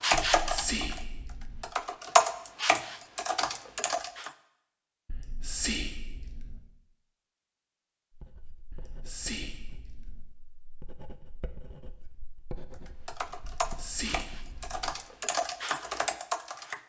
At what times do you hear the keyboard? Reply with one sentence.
You can hear the keyboard from 0.0 to 4.3 s and from 12.7 to 16.8 s.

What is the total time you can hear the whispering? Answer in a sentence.
You can hear the whispering for 6 seconds altogether.